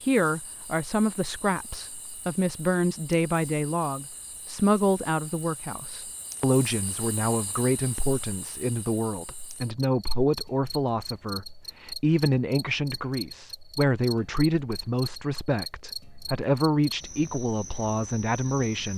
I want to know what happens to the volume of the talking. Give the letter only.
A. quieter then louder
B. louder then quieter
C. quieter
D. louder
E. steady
E.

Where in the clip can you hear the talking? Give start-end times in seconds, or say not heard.
0.0-18.9.